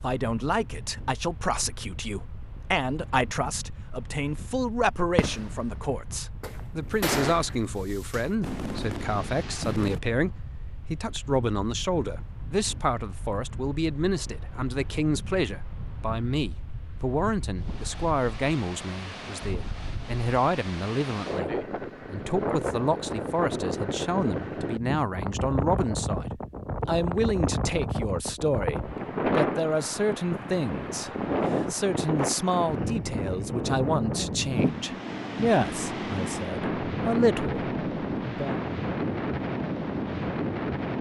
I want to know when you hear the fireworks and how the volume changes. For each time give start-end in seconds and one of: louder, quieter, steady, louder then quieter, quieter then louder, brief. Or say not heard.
5.2-10.0 louder then quieter.